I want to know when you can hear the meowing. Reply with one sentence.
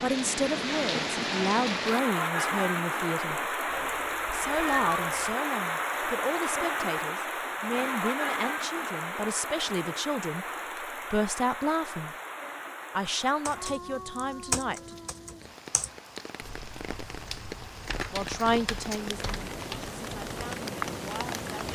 You can hear the meowing from 3.6 to 5.3 s.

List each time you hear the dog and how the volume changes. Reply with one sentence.
The dog can't be heard in this clip.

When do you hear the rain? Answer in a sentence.
You can hear the rain from 0.0 to 21.7 s.